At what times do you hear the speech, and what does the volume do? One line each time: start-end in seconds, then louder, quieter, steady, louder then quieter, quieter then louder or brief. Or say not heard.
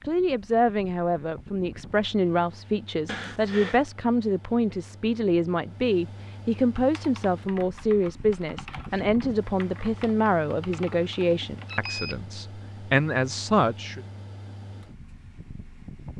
0.0-14.0 steady.